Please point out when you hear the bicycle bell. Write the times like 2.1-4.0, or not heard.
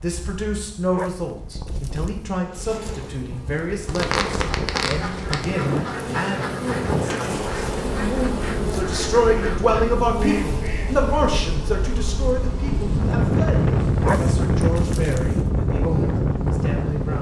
not heard.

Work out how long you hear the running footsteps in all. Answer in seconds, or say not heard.
not heard.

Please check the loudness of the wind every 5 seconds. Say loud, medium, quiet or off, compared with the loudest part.
quiet, medium, loud, loud.